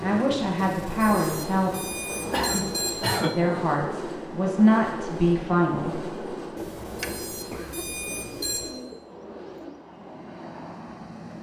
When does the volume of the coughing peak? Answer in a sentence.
The loudest moment of the coughing is at 3 seconds.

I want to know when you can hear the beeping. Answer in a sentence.
The beeping can be heard from 0.6 to 3.2 s and from 6.5 to 8.7 s.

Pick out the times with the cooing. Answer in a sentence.
You can hear the cooing from 6.8 to 9.8 s.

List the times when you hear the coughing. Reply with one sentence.
You can hear the coughing from 2.3 to 3.4 s and from 7.3 to 8.0 s.